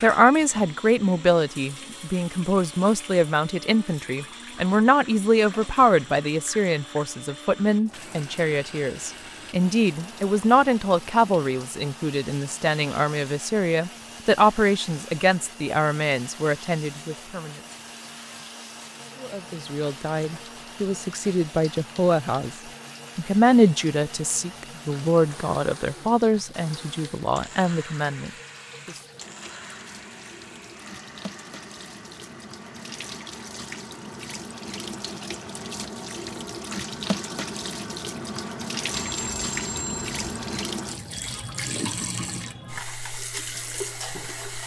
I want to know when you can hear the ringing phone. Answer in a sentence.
The ringing phone can be heard from 38.9 to 40.8 s.